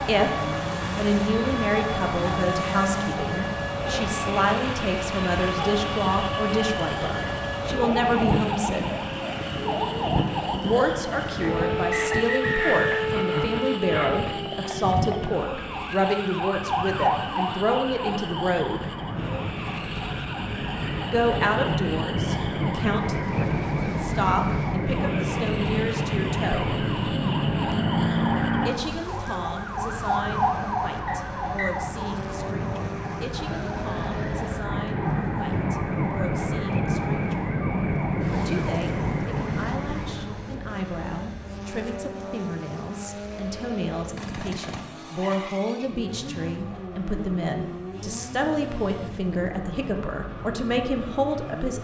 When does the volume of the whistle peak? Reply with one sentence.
The loudest moment of the whistle is at 13 seconds.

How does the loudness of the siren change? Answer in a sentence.
The volume of the siren stays about the same.